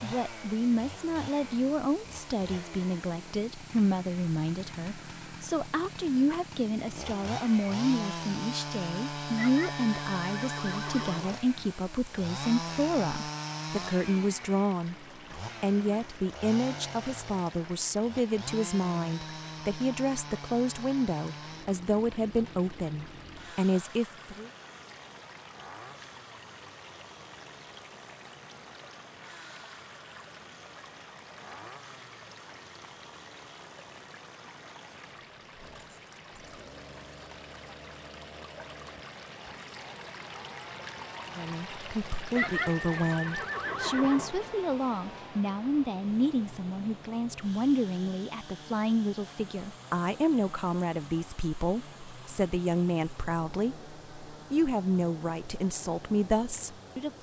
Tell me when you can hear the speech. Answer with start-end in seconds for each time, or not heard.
0.0-24.5, 41.4-57.1.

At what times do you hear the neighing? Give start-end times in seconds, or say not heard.
9.3-11.4, 42.4-44.4.